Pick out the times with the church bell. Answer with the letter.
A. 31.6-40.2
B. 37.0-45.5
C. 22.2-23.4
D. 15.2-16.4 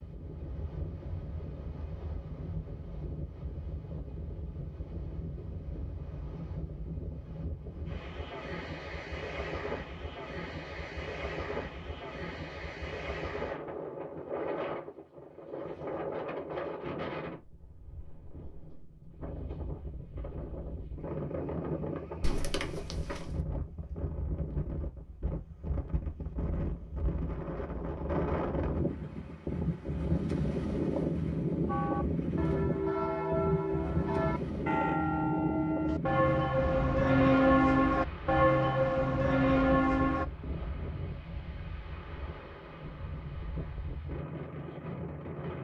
A.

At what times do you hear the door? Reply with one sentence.
You can hear the door from 22.2 to 23.4 s.